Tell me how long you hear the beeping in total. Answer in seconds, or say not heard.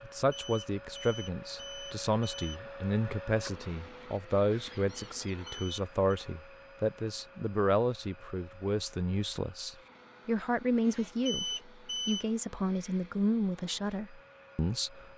4 s.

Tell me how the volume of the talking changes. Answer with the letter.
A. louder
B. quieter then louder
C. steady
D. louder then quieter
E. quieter
C.